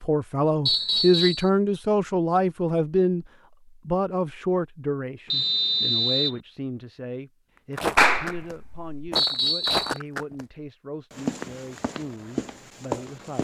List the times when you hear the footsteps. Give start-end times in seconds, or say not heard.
7.8-10.4, 11.1-13.3.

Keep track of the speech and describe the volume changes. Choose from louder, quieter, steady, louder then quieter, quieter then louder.
quieter.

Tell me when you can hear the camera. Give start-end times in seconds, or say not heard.
not heard.